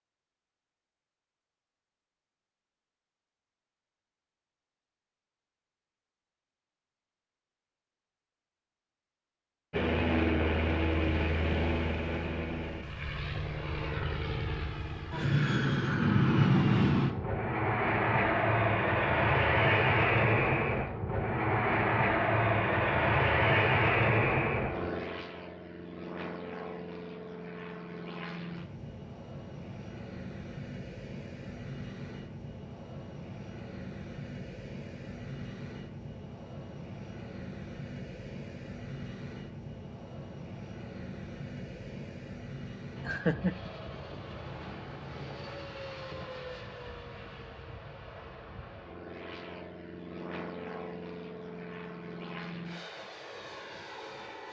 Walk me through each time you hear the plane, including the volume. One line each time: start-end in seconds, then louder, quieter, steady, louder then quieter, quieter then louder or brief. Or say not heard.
9.7-54.4 quieter.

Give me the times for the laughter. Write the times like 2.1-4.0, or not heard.
43.0-43.7.